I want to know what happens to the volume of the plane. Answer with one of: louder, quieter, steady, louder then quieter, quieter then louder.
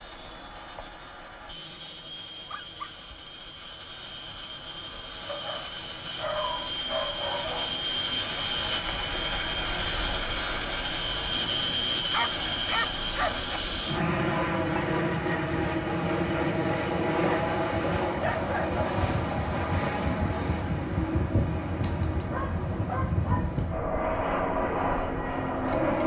louder.